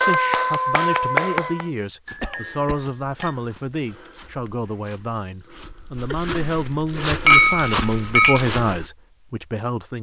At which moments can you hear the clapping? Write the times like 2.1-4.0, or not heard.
0.0-1.7.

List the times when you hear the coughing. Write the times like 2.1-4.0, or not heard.
2.2-2.9, 6.1-6.5.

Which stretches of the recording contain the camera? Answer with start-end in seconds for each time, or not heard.
not heard.